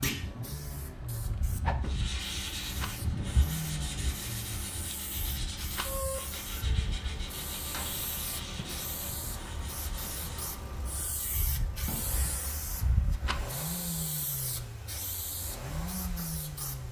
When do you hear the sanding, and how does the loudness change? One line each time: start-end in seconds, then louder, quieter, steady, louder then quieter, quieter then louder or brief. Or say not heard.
1.8-10.6 quieter.